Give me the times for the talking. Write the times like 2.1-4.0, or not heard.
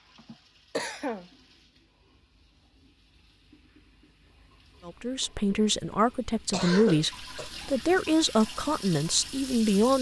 4.8-9.9.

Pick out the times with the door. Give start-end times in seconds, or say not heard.
not heard.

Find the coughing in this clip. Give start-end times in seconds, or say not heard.
0.1-1.3, 6.5-7.5.